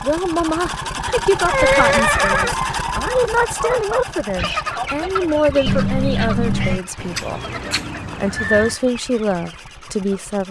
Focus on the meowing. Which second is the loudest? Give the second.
6 s.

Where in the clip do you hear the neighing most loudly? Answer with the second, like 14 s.
2 s.